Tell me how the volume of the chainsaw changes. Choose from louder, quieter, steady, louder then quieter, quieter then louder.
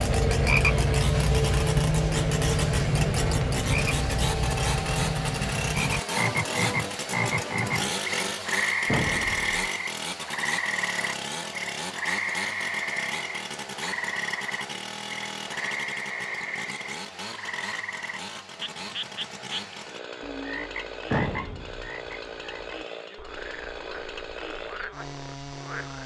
quieter.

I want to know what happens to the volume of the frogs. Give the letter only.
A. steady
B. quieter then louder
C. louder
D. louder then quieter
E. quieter
E.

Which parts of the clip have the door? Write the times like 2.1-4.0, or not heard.
8.8-9.5, 21.1-21.9.